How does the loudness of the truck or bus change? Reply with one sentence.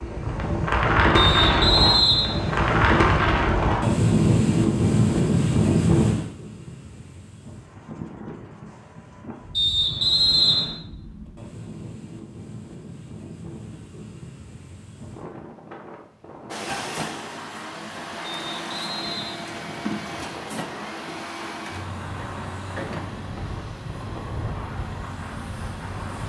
The volume of the truck or bus stays about the same.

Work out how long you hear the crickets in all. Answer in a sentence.
The crickets can't be heard in this clip.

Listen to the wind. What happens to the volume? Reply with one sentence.
The loudness of the wind goes down.